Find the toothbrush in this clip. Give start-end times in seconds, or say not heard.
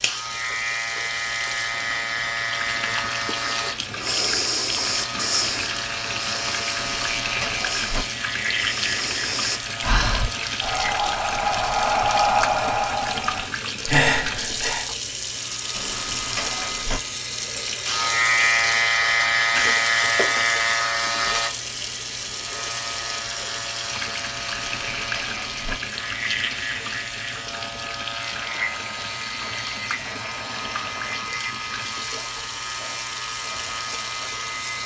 not heard.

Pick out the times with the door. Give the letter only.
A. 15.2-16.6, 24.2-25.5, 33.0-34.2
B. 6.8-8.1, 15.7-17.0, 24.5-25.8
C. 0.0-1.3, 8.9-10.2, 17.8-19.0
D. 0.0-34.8
B.